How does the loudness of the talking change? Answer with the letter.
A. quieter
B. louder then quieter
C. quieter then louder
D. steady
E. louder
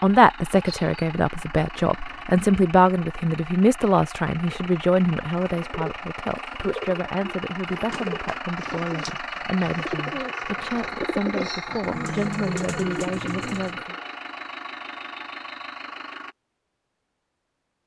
A.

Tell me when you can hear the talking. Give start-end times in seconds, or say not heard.
0.0-13.9.